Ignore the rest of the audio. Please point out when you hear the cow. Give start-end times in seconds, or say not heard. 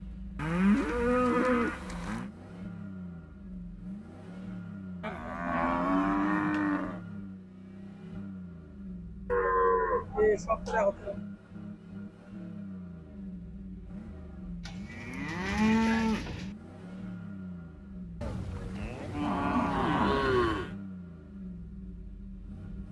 0.3-2.3, 5.0-7.0, 9.3-11.2, 14.7-16.6, 18.2-20.7.